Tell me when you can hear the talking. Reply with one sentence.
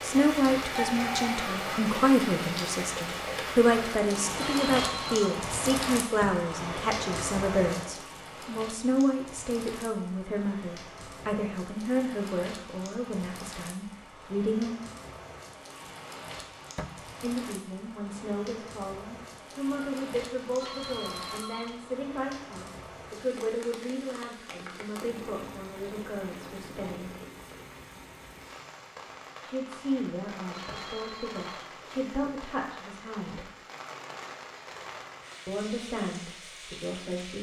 The talking can be heard from 0.0 to 14.8 s, from 17.2 to 27.1 s, from 29.4 to 33.5 s and from 35.5 to 37.3 s.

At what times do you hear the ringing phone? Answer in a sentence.
The ringing phone can be heard from 4.3 to 5.4 s, from 20.6 to 22.0 s and from 30.5 to 31.8 s.